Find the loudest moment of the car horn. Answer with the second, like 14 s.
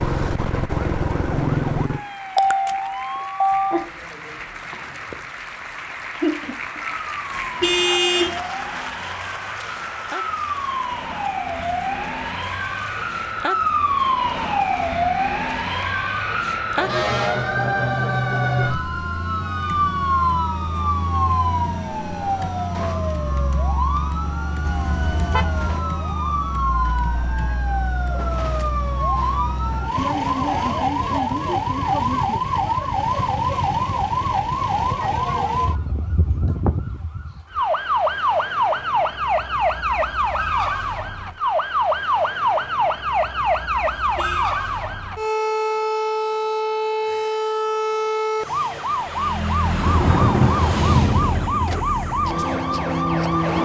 8 s.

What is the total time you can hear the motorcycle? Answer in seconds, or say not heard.
4 s.